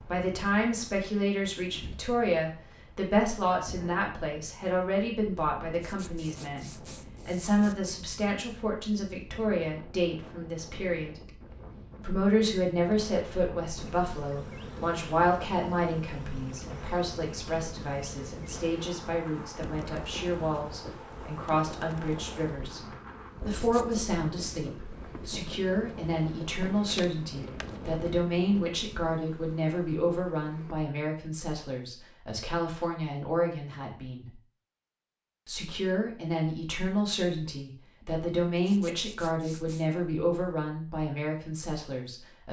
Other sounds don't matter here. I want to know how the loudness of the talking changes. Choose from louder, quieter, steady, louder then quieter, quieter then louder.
steady.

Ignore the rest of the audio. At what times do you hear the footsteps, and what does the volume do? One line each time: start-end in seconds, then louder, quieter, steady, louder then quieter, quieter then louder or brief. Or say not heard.
not heard.